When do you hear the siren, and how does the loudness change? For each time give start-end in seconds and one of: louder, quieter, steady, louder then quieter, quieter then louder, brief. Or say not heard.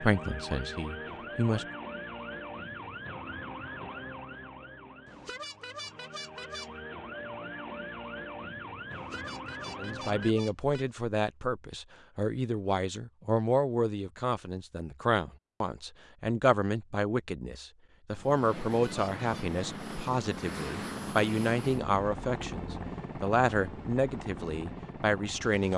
0.0-10.3 quieter then louder.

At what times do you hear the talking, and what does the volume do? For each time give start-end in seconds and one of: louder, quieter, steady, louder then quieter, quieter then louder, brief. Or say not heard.
0.0-1.6 brief
9.8-25.7 steady.